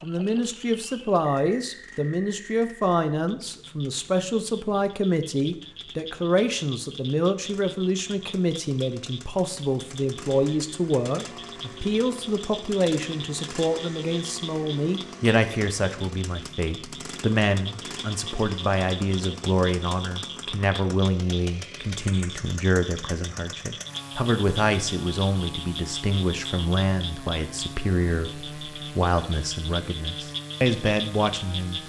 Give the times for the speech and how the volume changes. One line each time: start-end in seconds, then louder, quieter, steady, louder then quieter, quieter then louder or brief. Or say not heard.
0.0-31.8 steady.